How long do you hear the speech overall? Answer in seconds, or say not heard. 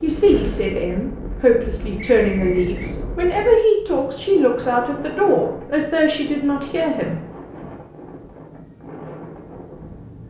7 s.